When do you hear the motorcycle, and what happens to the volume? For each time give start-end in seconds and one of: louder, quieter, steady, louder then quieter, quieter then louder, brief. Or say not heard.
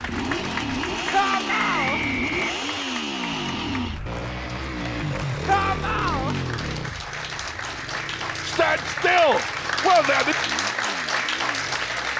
0.0-12.1 quieter.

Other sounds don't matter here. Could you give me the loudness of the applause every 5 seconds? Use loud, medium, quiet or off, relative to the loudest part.
medium, medium, loud.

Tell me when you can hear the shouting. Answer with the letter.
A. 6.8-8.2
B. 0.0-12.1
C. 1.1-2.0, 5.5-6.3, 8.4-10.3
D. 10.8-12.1
C.